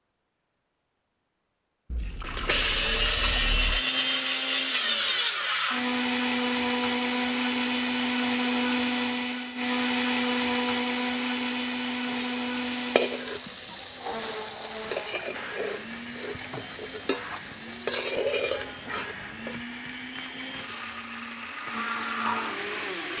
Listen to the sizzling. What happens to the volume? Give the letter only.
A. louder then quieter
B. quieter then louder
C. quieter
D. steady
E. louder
C.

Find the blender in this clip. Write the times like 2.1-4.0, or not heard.
2.4-23.1.